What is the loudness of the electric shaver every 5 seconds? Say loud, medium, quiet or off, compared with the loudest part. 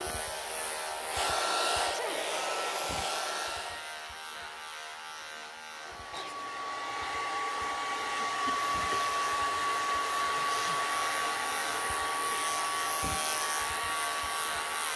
loud, medium, loud.